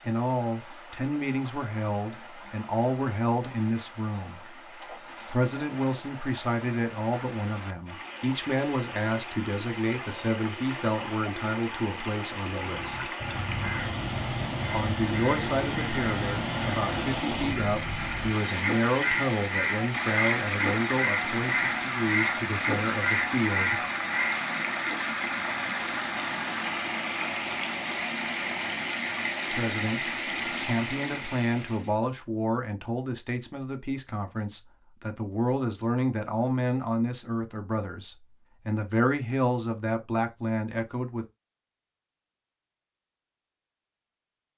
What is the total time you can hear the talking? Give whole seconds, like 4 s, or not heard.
33 s.